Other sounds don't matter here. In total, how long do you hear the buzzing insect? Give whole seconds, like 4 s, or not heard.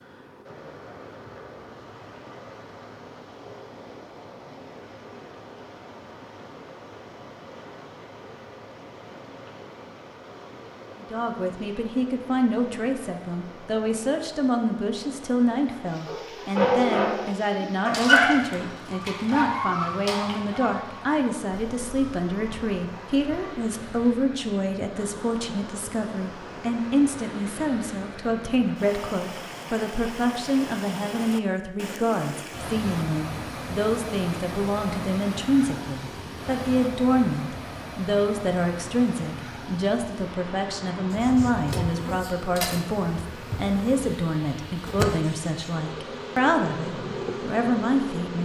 7 s.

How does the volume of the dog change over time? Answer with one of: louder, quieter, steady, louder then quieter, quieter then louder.
quieter.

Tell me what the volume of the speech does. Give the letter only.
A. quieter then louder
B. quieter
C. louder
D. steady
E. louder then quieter
D.